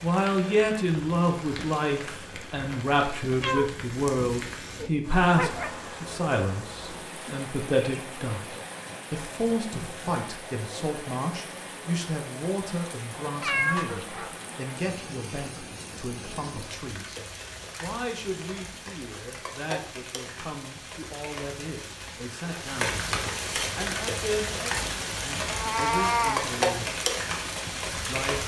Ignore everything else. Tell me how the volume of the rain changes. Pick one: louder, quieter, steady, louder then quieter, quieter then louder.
louder.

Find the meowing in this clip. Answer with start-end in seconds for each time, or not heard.
3.2-5.7, 13.4-14.3, 25.5-26.4.